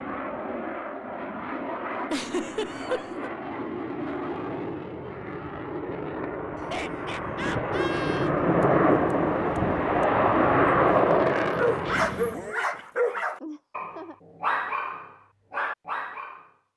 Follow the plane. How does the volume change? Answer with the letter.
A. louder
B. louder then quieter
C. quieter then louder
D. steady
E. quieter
A.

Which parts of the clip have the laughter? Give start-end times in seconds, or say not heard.
2.1-3.3, 6.5-8.3, 13.4-14.2.